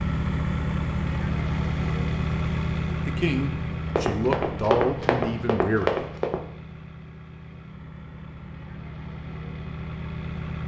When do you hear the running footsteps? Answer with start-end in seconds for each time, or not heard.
3.9-6.4.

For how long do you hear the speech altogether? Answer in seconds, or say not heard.
3 s.